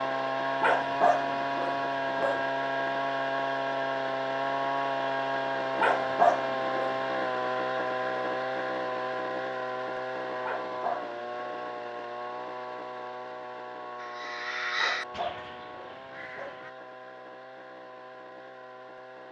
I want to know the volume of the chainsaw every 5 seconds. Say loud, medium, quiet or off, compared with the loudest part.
loud, loud, medium, quiet.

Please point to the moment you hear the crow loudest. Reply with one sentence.
The volume of the crow peaks at 15 seconds.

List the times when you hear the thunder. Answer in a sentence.
The thunder can't be heard in this clip.